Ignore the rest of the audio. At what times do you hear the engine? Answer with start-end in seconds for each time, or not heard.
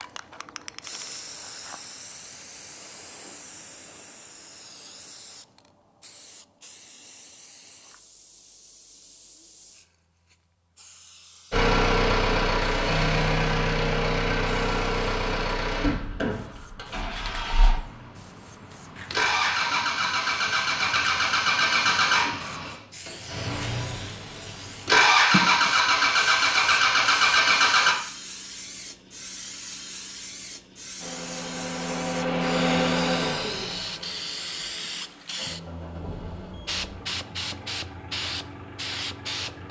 11.5-27.9, 30.9-39.6.